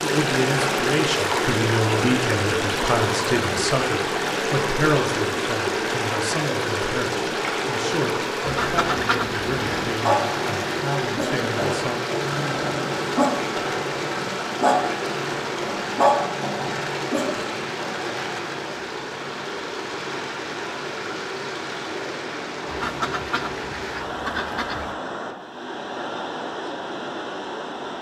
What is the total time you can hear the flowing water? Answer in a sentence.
You can hear the flowing water for 28 seconds altogether.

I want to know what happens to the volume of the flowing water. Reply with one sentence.
The volume of the flowing water goes down.